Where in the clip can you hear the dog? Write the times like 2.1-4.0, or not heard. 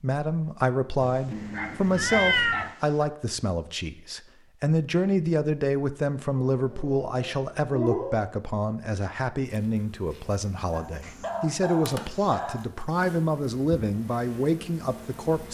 1.0-3.0, 6.3-8.2, 10.7-12.7.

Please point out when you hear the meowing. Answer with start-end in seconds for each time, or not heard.
1.3-2.7.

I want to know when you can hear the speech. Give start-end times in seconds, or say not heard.
0.0-15.4.